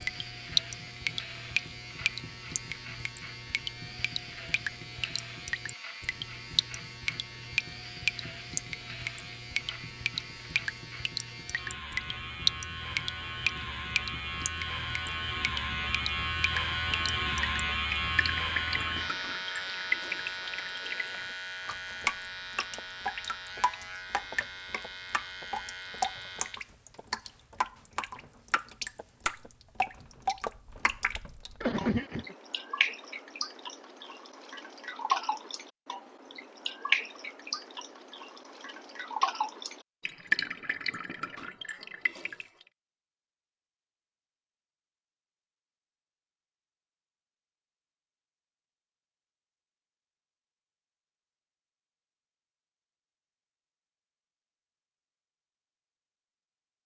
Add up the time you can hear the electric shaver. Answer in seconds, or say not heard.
27 s.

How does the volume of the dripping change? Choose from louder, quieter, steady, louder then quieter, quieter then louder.
steady.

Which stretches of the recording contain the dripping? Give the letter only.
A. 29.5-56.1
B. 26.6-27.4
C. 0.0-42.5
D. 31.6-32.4
C.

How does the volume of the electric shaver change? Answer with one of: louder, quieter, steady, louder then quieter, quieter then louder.
louder then quieter.